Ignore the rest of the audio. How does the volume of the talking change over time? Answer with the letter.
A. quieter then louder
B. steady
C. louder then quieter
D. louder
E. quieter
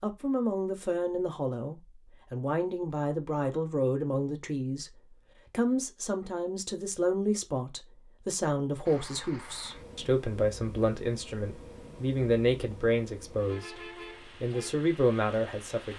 B.